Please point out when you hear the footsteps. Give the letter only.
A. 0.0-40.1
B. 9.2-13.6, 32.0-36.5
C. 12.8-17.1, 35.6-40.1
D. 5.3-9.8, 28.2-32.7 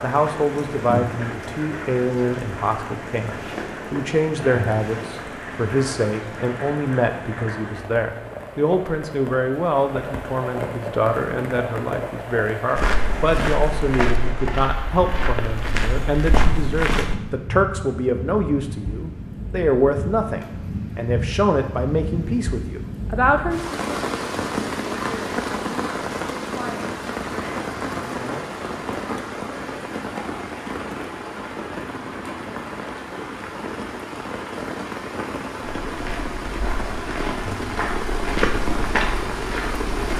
C.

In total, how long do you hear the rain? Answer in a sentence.
The rain can be heard for 40 seconds in total.